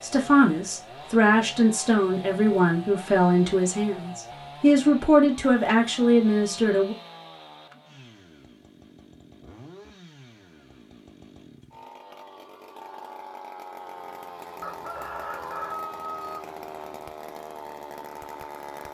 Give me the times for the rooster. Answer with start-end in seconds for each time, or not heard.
14.6-16.4.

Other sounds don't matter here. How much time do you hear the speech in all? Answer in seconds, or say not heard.
7 s.